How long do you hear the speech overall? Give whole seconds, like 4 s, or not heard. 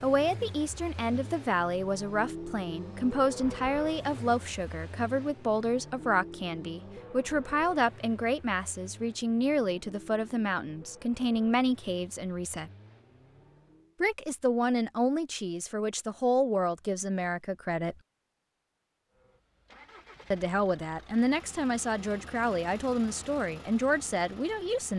21 s.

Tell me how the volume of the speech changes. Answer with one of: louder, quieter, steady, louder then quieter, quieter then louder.
steady.